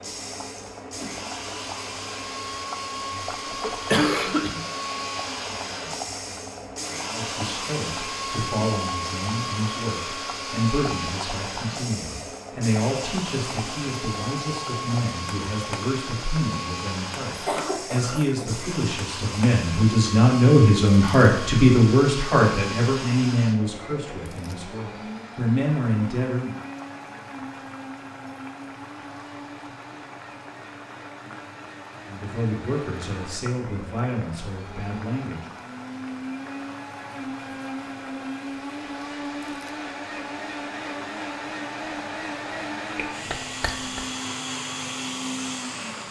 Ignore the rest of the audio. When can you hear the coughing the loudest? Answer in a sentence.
The volume of the coughing peaks at 4 seconds.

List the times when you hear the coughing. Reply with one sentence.
The coughing can be heard from 3.1 to 4.6 s, from 17.3 to 18.6 s and from 43.0 to 44.0 s.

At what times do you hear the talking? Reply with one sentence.
You can hear the talking from 7.1 to 26.6 s and from 32.0 to 35.4 s.